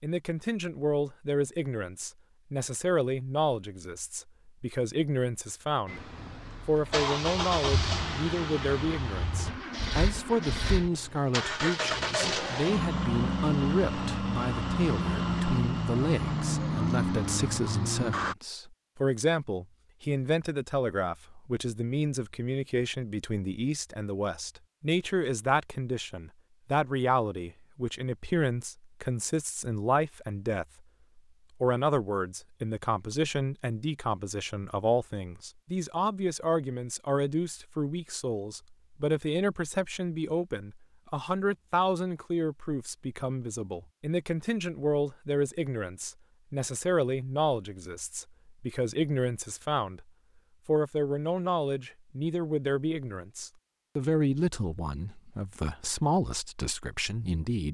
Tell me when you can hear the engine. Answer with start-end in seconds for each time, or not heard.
5.8-18.4.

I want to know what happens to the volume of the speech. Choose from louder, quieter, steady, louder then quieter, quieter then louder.
steady.